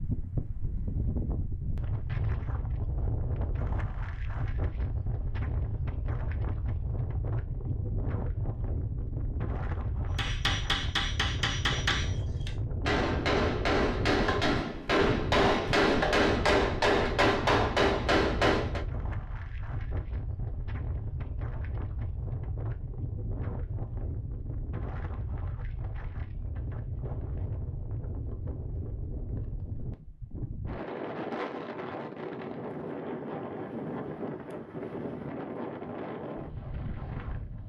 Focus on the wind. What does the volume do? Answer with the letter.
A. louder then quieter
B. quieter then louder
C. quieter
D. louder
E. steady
E.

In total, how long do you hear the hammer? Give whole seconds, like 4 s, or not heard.
9 s.